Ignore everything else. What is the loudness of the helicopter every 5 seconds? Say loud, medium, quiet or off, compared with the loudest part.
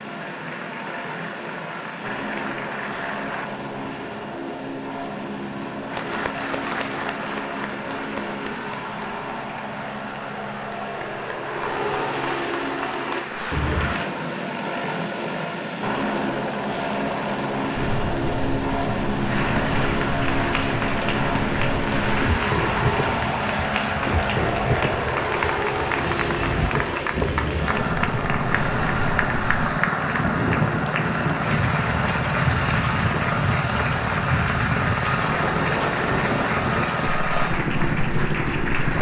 medium, medium, loud, loud, loud, loud, loud, loud.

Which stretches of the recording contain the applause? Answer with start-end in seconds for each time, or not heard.
0.0-3.5, 5.9-14.1, 19.2-38.9.